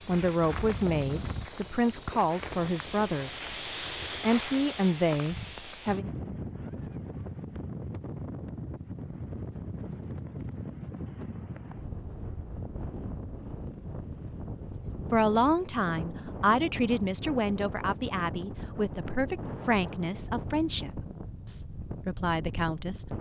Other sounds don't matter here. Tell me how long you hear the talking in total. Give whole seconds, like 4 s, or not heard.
13 s.